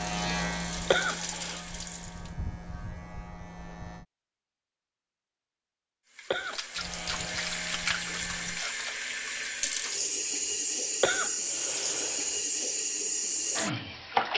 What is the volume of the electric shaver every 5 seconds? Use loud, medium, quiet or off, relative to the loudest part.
loud, medium, off.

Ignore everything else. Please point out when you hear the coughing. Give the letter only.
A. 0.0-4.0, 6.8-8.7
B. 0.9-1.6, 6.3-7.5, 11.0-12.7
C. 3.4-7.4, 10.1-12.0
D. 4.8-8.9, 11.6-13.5
B.